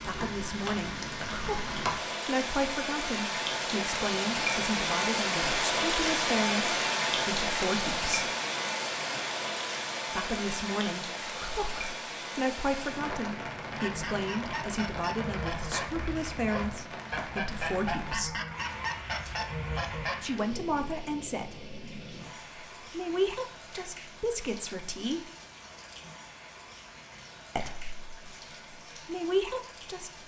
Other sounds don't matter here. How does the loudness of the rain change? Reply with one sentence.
The loudness of the rain goes down.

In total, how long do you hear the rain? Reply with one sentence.
You can hear the rain for 30 seconds altogether.